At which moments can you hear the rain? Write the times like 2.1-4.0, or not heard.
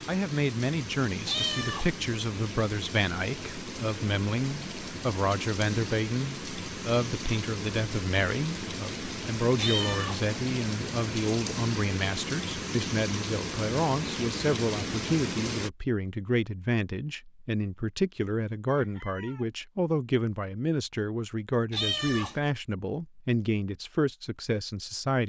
0.0-15.7.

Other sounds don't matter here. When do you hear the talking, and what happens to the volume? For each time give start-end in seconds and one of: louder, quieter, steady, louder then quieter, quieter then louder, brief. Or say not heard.
0.1-25.2 steady.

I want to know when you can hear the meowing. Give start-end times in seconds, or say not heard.
1.2-1.9, 9.6-10.2, 21.7-22.4.